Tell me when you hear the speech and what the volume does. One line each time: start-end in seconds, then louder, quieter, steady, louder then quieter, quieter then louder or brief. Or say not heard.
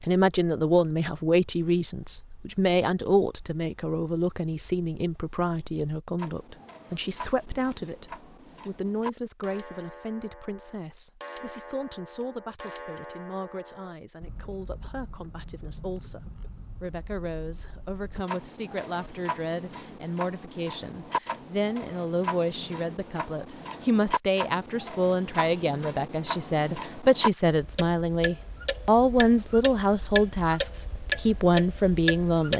0.0-32.5 quieter then louder.